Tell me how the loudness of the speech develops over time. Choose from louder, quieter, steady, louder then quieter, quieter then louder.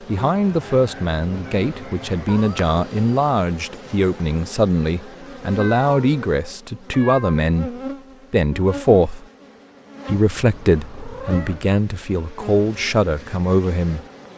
steady.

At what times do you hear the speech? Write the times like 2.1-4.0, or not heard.
0.1-9.2, 10.1-14.0.